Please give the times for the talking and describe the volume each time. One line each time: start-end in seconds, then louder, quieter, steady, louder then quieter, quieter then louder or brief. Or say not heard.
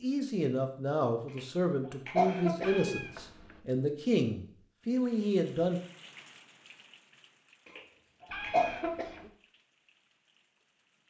0.0-5.8 steady.